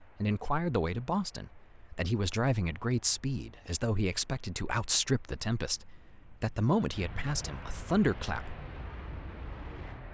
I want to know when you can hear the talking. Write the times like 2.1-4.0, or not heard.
0.0-8.6.